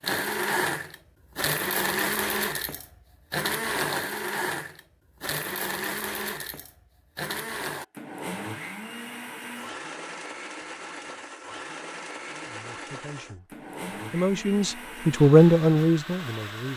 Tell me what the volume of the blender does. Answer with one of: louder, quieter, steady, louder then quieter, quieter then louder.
quieter.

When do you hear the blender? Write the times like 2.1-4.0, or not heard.
0.0-16.7.